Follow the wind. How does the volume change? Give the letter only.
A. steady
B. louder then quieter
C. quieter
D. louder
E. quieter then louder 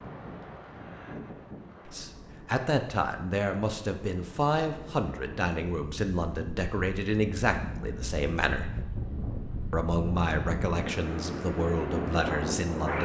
D.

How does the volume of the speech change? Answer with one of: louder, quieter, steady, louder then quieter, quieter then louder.
steady.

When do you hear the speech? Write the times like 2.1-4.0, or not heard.
1.9-8.8, 9.7-12.9.